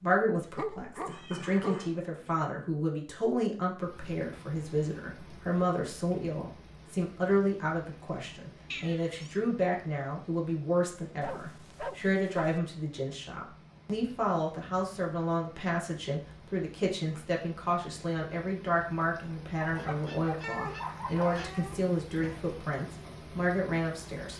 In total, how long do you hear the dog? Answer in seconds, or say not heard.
5 s.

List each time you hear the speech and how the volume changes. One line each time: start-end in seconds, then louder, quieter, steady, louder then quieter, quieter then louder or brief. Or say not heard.
0.0-24.3 steady.